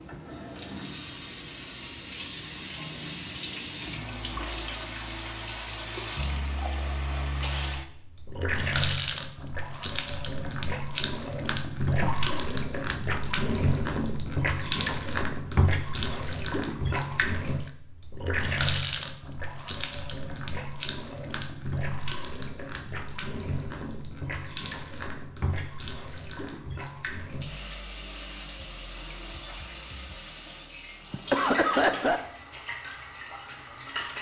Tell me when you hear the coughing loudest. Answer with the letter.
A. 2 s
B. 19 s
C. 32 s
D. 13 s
C.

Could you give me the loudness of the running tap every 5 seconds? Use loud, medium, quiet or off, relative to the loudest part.
medium, loud, loud, loud, medium, medium, medium.